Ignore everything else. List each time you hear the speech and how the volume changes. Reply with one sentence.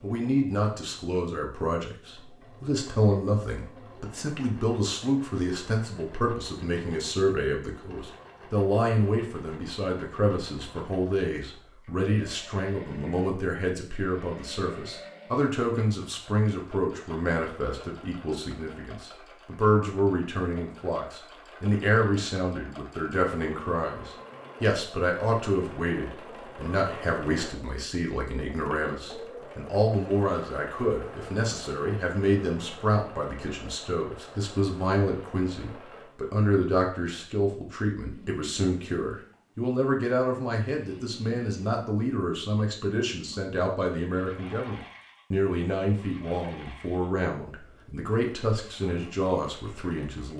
The speech can be heard from 0.0 to 50.3 s, at a steady volume.